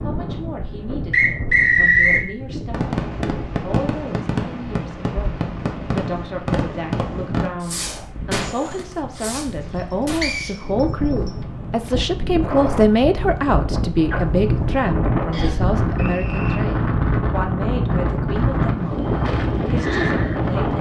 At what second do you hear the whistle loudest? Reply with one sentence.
The volume of the whistle peaks at 2 seconds.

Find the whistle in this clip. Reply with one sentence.
You can hear the whistle from 1.1 to 2.2 s, from 10.2 to 11.3 s and from 15.3 to 16.6 s.